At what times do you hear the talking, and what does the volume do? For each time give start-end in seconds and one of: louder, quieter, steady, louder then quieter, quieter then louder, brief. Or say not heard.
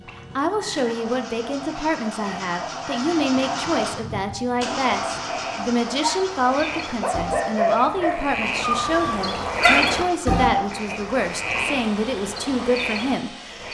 0.0-13.6 steady.